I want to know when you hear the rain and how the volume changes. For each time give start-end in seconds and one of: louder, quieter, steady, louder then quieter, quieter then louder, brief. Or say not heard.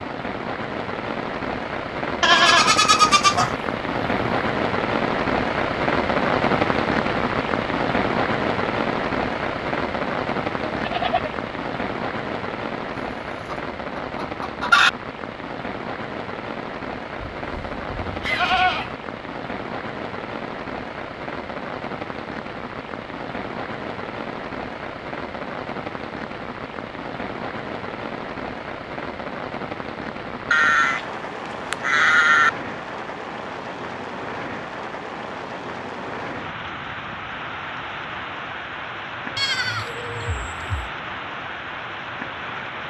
0.0-42.8 quieter.